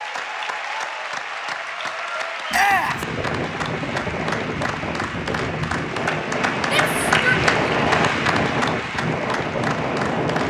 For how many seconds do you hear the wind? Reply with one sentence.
You can hear the wind for 8 seconds altogether.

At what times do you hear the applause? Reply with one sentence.
You can hear the applause from 0.0 to 10.4 s.